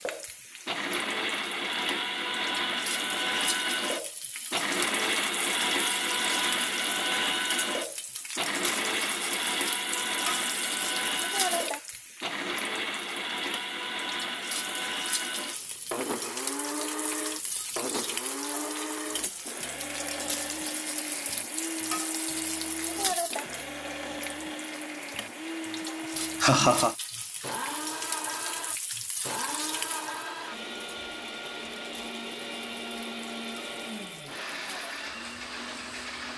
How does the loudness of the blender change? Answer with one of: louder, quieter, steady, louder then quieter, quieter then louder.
quieter.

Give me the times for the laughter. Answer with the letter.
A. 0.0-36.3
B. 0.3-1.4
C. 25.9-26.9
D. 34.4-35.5
C.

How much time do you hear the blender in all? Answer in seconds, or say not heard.
36 s.